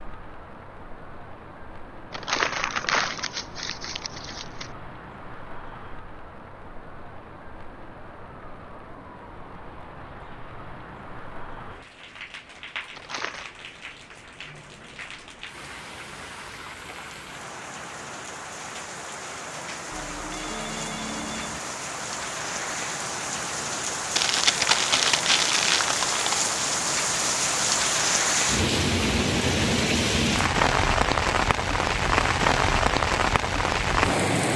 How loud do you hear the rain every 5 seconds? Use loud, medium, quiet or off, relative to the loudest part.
quiet, quiet, quiet, quiet, medium, loud, loud.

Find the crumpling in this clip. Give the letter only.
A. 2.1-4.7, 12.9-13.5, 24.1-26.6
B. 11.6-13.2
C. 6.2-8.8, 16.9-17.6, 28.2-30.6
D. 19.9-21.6
A.